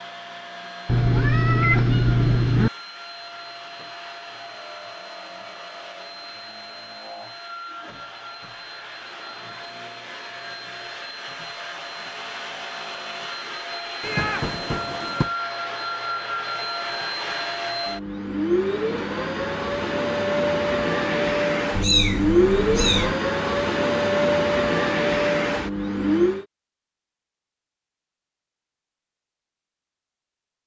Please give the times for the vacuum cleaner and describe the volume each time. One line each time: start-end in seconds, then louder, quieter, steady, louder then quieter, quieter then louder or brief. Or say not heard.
0.0-26.4 louder.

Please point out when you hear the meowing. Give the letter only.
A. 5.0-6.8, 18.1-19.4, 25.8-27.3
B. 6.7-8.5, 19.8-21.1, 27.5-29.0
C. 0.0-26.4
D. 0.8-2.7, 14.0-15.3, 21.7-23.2
D.